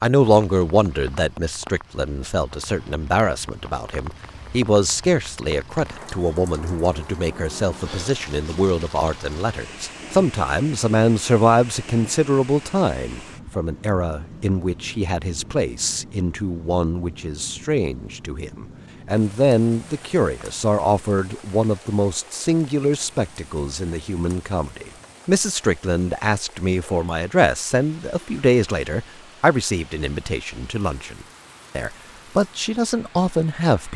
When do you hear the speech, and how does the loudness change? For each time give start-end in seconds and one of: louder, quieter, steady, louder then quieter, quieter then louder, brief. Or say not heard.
0.0-33.9 steady.